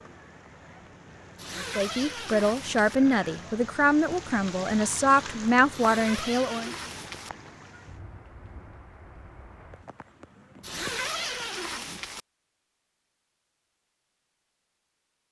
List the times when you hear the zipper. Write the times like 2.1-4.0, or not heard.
1.4-3.0, 5.7-7.3, 10.6-12.2.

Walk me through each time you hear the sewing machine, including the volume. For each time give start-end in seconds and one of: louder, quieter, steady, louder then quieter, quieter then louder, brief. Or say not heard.
not heard.